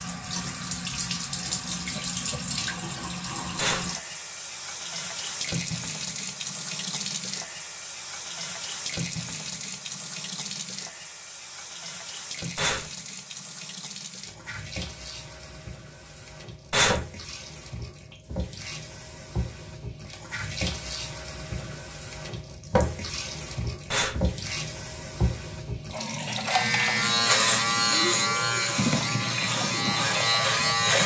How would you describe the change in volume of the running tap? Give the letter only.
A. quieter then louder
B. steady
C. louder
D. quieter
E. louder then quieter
A.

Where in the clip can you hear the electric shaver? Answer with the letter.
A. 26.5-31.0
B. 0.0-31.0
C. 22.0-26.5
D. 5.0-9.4
A.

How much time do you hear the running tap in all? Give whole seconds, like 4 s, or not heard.
31 s.